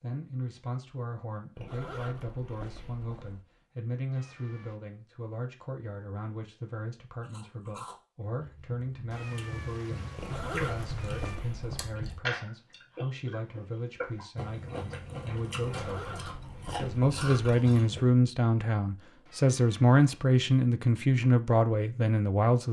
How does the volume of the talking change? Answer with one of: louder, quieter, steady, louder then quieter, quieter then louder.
louder.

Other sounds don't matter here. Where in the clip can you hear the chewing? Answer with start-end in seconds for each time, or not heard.
7.2-18.1.